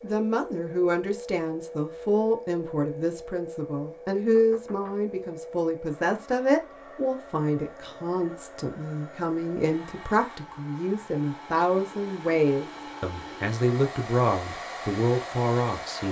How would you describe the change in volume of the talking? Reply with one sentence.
The loudness of the talking stays about the same.